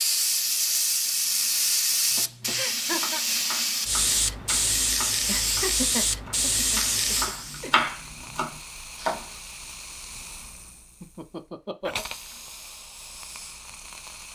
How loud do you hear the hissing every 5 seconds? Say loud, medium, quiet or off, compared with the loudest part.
loud, loud, quiet.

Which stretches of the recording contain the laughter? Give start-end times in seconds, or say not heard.
2.5-3.2, 5.1-7.8, 11.0-12.1.